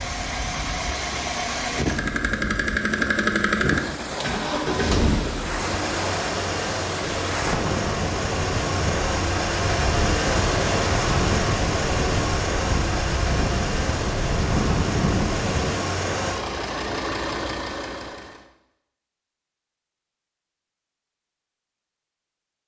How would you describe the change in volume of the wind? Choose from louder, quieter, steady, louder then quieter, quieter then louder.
louder.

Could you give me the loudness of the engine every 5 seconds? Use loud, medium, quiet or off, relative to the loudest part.
loud, loud, loud, loud, off.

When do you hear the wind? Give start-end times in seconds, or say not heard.
0.0-15.8.